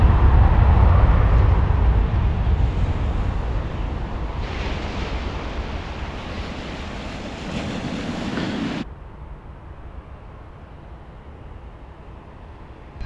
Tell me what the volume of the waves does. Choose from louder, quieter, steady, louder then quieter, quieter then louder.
louder.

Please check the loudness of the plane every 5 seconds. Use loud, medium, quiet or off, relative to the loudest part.
loud, quiet, quiet.